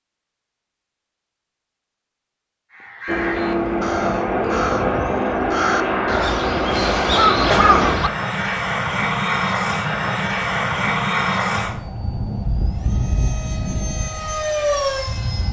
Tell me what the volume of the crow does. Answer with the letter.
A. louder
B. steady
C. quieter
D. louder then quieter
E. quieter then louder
A.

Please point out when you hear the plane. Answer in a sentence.
The plane can be heard from 3.0 to 15.4 s.